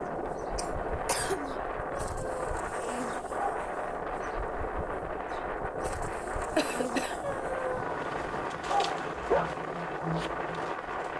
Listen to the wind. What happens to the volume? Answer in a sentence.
The loudness of the wind stays about the same.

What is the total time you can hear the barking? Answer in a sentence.
You can hear the barking for 4 seconds altogether.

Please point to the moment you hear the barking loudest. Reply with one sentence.
The volume of the barking peaks at 9 seconds.